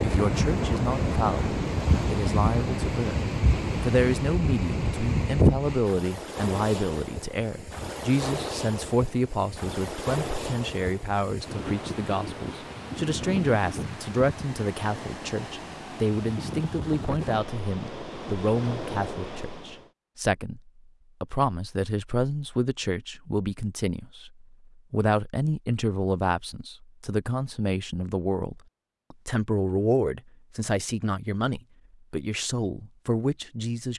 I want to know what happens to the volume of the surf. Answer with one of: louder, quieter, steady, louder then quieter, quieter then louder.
quieter.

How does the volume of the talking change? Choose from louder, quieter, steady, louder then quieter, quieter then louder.
steady.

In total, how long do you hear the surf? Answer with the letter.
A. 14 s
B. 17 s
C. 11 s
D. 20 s
D.